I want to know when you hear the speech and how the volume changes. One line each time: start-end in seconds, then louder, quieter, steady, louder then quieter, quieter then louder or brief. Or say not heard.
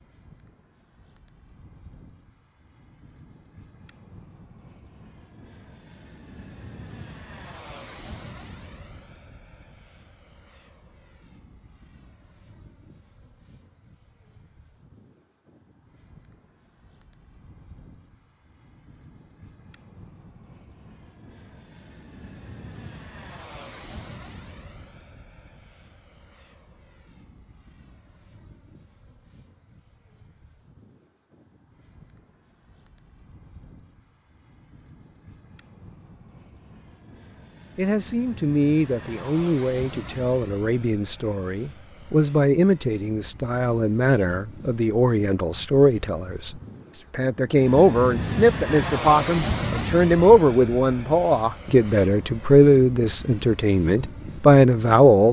37.8-55.2 louder.